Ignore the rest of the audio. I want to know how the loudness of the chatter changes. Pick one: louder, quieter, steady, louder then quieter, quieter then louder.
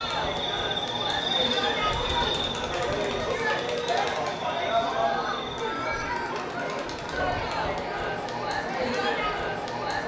steady.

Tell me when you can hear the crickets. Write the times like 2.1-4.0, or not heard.
0.0-5.6.